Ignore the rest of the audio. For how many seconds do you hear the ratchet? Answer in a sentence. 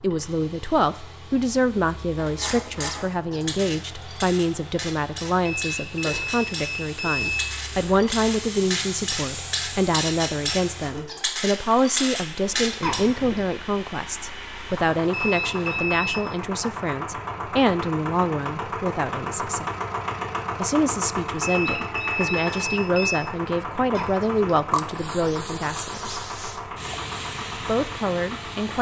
The ratchet can be heard for 11 seconds in total.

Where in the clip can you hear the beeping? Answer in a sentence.
You can hear the beeping from 5.5 to 7.5 s, from 15.1 to 16.2 s and from 21.4 to 23.2 s.